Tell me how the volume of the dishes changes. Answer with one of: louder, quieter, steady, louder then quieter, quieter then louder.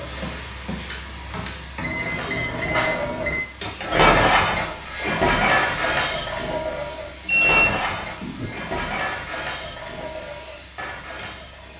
quieter.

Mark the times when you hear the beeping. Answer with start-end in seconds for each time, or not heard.
1.8-3.4, 7.2-8.5.